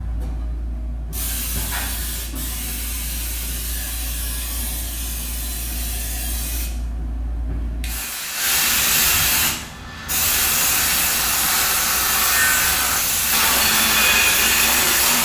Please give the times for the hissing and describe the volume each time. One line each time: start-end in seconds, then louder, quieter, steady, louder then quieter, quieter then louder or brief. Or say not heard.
0.0-15.2 louder.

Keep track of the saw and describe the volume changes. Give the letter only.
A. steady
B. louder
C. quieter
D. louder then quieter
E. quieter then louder
B.